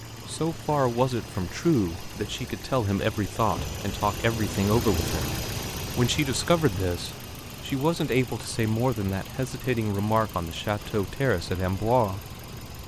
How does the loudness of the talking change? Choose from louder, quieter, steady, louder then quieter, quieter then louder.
steady.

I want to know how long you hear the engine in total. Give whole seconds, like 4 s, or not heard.
13 s.